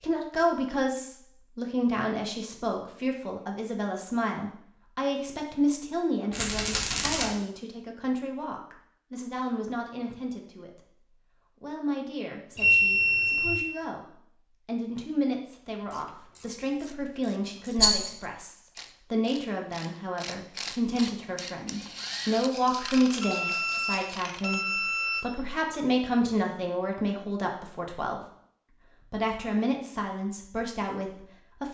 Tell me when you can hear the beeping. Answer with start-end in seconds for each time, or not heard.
12.6-13.6, 23.2-25.2.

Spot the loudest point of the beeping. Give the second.
13 s.